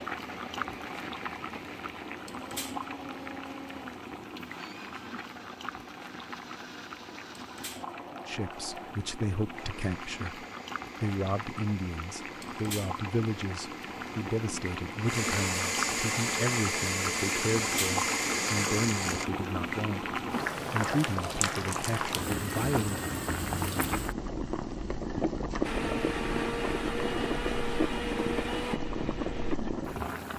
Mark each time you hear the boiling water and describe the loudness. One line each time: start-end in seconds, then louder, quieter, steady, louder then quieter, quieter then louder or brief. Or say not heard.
0.0-30.3 louder.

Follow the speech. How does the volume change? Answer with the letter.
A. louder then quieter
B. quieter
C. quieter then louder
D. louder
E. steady
E.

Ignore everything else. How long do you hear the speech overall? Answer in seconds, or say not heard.
15 s.